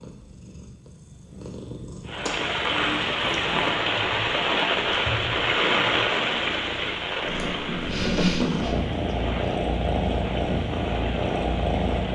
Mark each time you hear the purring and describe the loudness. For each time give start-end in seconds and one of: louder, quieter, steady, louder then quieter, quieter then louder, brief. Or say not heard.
0.0-12.1 louder.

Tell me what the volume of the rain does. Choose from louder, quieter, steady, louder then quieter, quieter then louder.
quieter.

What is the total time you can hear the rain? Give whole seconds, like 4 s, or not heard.
10 s.